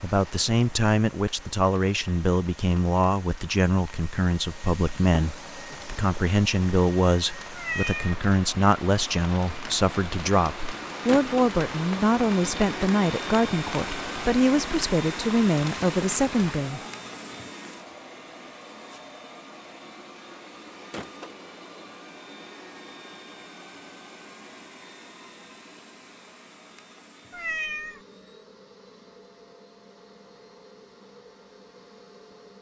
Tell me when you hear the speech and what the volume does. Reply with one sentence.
You can hear the speech from 0.0 to 16.8 s, at a steady volume.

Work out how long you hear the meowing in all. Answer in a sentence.
You can hear the meowing for 2 seconds altogether.